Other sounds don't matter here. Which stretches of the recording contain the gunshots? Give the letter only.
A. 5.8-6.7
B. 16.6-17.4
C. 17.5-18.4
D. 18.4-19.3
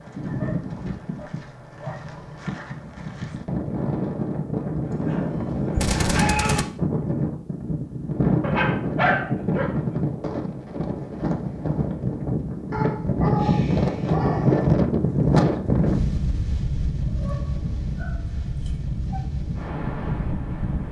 A.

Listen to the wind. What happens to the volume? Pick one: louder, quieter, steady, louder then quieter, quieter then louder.
louder then quieter.